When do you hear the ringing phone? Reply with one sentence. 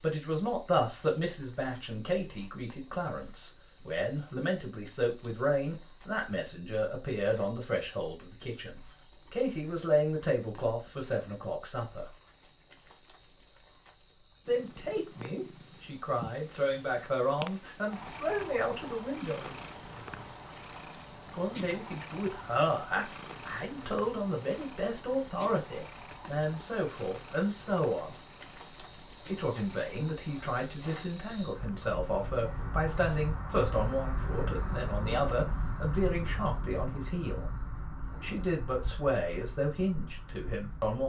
The ringing phone can't be heard in this clip.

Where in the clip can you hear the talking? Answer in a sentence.
You can hear the talking from 0.0 to 12.1 s, from 14.4 to 19.6 s, from 21.3 to 28.2 s, from 29.2 to 37.5 s and from 38.2 to 41.0 s.